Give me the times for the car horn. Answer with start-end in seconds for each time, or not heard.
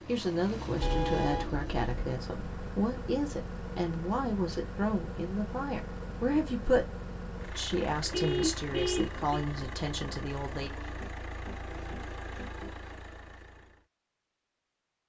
0.8-1.9, 8.1-9.4.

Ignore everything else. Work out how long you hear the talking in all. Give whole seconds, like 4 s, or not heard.
10 s.